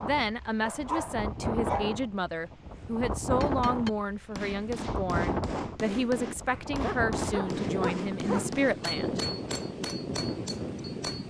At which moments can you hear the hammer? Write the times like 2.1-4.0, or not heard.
3.3-11.2.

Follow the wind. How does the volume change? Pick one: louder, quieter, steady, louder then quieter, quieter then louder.
steady.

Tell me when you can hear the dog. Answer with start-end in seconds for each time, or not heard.
0.6-2.0, 6.5-8.5.